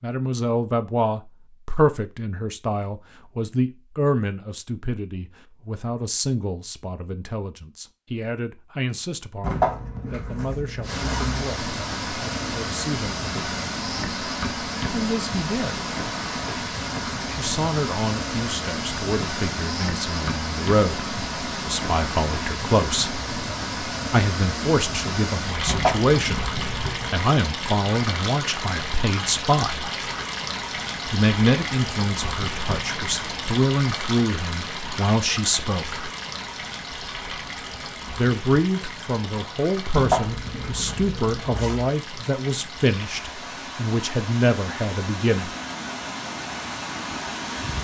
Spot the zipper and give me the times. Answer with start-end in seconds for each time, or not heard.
9.4-11.4, 25.6-27.1, 39.9-41.9.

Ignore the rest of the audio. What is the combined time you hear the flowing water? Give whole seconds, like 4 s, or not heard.
37 s.